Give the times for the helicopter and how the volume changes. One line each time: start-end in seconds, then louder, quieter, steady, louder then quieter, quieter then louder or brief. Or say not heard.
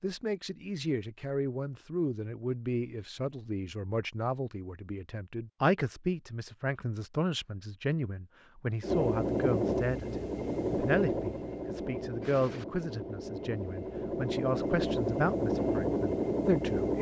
8.8-16.9 quieter then louder.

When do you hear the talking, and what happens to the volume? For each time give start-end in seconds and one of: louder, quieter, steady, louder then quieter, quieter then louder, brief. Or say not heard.
0.0-16.9 steady.